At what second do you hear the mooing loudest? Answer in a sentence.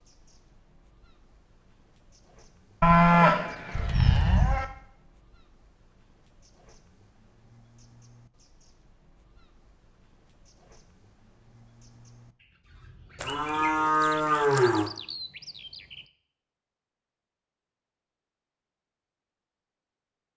The volume of the mooing peaks at 3 seconds.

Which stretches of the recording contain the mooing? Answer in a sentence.
The mooing can be heard from 2.8 to 4.7 s and from 13.2 to 14.9 s.